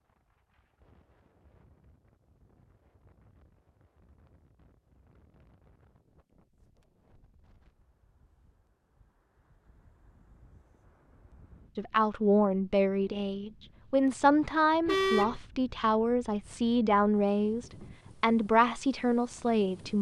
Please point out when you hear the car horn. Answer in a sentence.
The car horn can be heard from 14.8 to 15.4 s.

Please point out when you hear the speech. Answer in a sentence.
You can hear the speech from 11.8 to 19.9 s.